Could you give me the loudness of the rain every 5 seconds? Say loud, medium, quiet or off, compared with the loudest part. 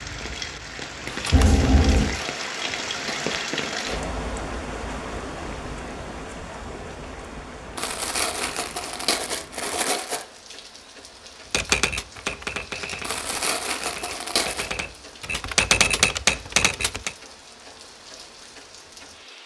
loud, medium, quiet, quiet.